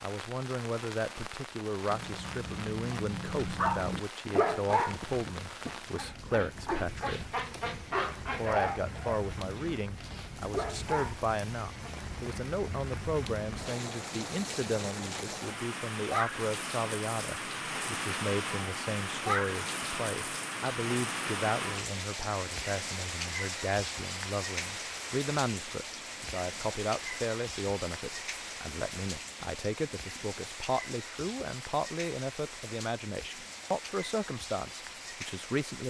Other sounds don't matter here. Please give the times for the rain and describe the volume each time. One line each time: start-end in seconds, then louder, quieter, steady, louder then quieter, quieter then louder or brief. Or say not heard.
0.0-35.8 louder then quieter.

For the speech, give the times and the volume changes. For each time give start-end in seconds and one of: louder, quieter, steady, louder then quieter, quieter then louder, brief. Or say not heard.
0.0-7.3 steady
8.2-35.8 steady.